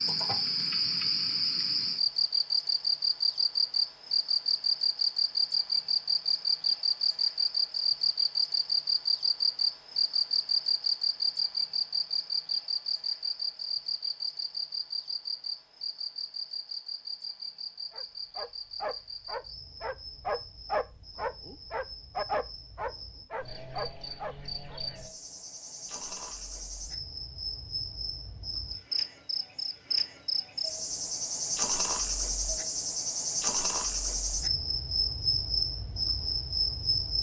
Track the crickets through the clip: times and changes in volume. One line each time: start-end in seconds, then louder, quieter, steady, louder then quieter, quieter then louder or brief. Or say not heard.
0.0-37.1 quieter then louder.